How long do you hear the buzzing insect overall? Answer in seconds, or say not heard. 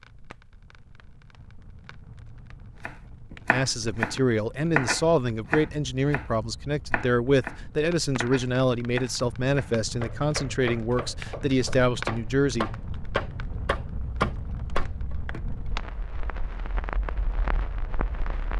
not heard.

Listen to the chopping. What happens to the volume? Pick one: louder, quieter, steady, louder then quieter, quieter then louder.
quieter then louder.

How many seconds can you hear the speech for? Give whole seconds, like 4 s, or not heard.
9 s.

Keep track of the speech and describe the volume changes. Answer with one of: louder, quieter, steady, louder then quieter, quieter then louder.
steady.